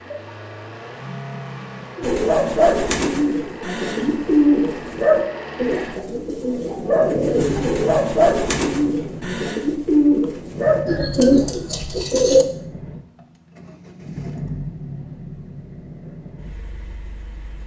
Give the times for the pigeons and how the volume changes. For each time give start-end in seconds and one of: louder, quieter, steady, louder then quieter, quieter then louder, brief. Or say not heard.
2.0-12.4 steady.